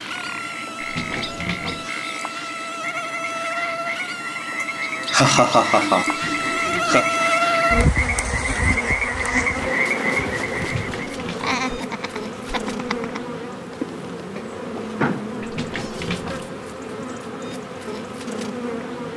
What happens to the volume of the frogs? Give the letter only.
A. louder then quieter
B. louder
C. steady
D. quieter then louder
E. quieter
B.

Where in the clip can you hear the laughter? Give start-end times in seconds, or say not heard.
4.6-7.0, 11.4-13.2.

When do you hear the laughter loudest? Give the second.
5 s.